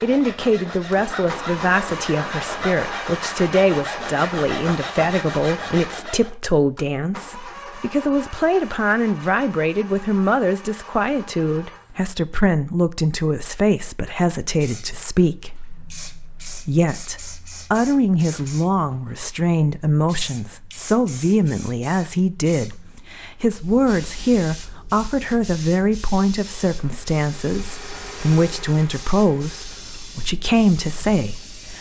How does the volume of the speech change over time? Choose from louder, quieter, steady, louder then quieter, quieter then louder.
steady.